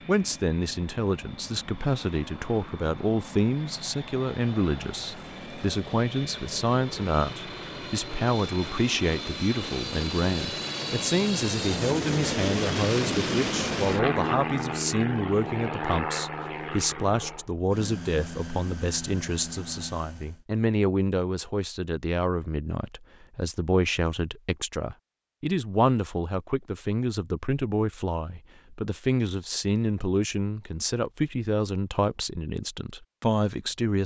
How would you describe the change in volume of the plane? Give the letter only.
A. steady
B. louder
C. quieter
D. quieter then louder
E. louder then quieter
E.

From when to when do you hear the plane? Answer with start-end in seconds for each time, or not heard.
0.0-20.4.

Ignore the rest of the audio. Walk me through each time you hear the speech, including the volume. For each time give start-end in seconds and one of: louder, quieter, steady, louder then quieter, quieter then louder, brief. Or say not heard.
0.1-34.0 steady.